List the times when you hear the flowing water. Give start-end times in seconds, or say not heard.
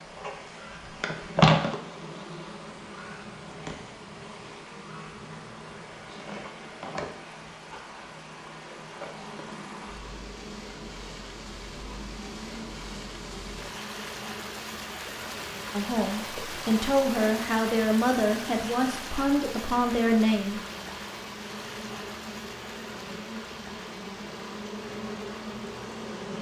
0.0-26.3.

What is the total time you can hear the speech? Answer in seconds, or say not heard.
5 s.